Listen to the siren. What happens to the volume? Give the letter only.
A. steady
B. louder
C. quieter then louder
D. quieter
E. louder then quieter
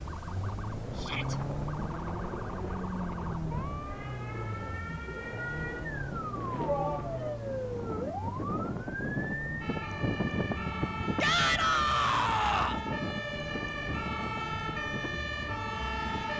B.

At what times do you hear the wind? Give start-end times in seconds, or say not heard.
0.0-16.3.